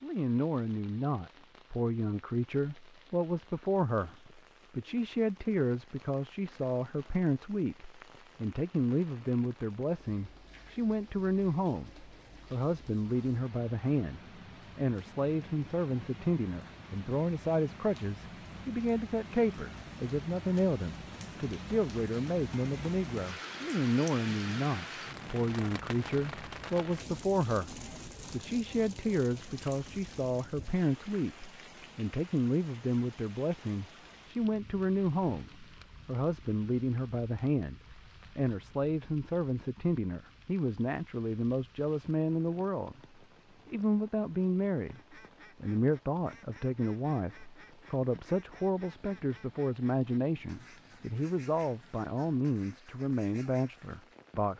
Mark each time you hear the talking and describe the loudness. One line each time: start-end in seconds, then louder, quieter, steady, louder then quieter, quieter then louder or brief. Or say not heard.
0.0-43.0 steady
43.6-45.0 brief
45.6-54.5 steady.